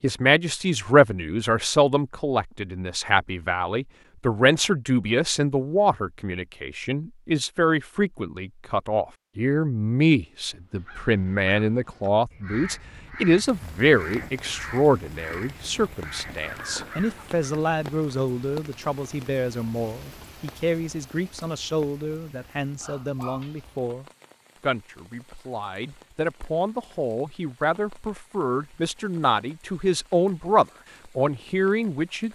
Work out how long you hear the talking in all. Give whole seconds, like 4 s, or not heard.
32 s.